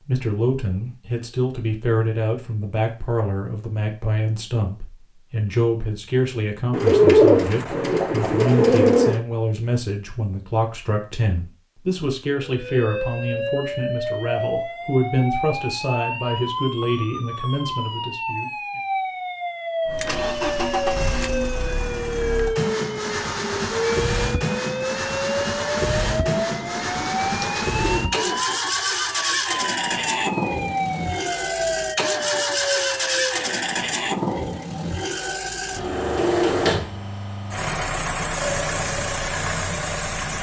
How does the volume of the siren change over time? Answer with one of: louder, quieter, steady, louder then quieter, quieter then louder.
steady.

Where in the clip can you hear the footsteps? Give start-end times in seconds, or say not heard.
not heard.